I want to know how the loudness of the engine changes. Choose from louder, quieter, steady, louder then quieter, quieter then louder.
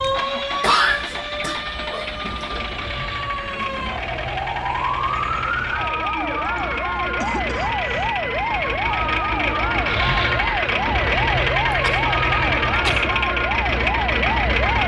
louder.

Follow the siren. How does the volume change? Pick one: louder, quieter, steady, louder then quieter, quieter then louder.
louder.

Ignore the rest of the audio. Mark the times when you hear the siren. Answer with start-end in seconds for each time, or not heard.
0.0-14.8.